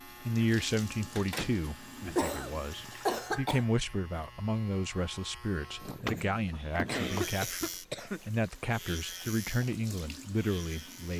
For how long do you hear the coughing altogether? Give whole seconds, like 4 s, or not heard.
4 s.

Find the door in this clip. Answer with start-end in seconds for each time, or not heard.
1.1-2.2, 5.8-7.4.